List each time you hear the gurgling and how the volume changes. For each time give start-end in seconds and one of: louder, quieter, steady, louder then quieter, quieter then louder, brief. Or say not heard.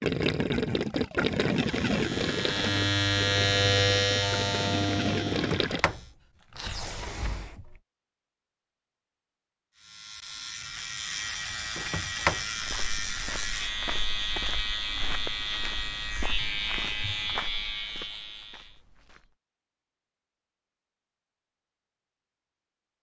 0.0-5.8 quieter then louder.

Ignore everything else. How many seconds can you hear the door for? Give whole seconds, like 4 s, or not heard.
3 s.